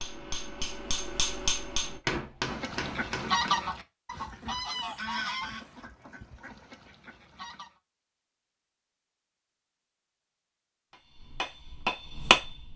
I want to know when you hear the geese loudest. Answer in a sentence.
The volume of the geese peaks at 3 seconds.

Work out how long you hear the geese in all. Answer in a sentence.
You can hear the geese for 5 seconds altogether.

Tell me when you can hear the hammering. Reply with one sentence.
You can hear the hammering from 0.0 to 3.6 s and from 10.9 to 12.7 s.